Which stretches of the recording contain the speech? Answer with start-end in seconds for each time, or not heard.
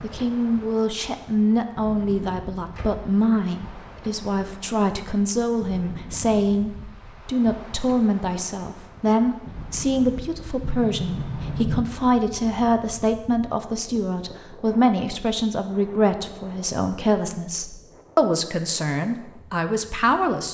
0.0-20.4.